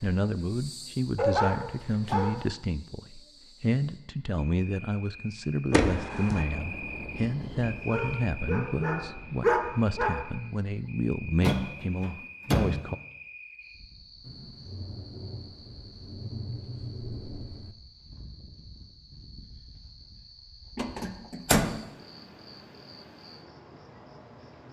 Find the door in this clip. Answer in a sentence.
The door can be heard from 5.7 to 6.5 s, from 11.4 to 12.9 s and from 20.8 to 21.7 s.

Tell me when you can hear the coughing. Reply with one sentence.
You can't hear the coughing here.